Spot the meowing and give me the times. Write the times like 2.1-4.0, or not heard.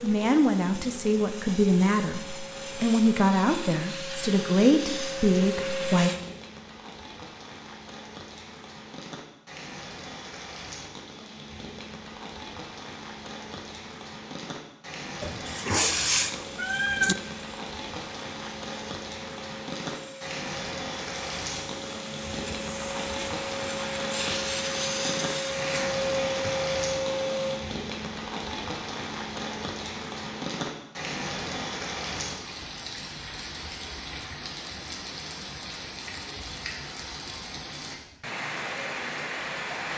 15.2-17.1.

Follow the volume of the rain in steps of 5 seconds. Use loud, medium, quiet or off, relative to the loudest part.
medium, medium, medium, loud, loud, loud, loud, loud.